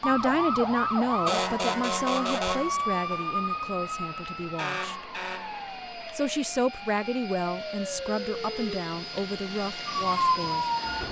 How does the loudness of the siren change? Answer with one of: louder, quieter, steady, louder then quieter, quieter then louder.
quieter then louder.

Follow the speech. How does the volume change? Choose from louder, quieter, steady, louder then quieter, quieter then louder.
quieter.